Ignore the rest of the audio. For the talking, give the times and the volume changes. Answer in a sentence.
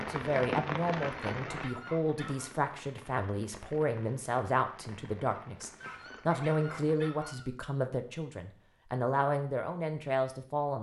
The talking can be heard from 0.0 to 10.7 s, at a steady volume.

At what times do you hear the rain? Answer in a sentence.
You can hear the rain from 0.0 to 7.0 s.